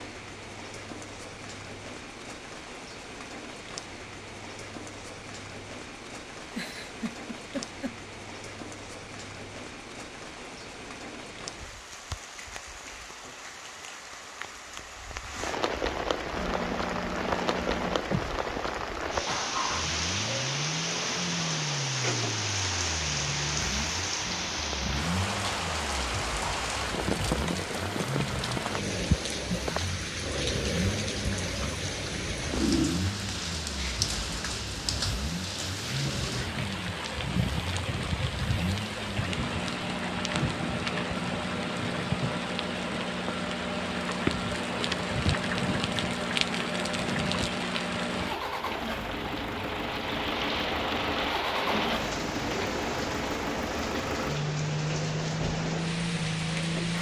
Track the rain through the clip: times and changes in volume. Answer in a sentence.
You can hear the rain from 0.0 to 56.9 s, getting louder.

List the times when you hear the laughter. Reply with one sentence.
The laughter can be heard from 6.5 to 8.0 s.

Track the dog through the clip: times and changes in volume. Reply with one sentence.
The dog can't be heard in this clip.